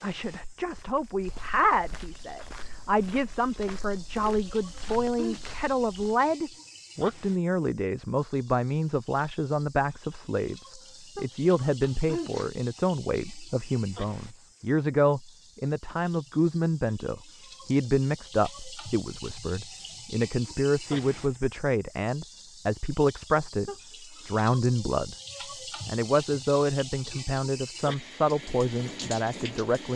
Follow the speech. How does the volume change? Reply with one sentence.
The volume of the speech stays about the same.